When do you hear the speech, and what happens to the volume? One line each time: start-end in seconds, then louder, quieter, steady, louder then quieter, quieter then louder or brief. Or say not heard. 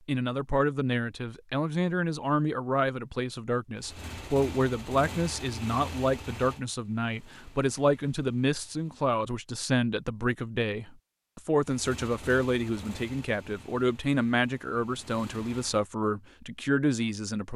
0.1-17.5 steady.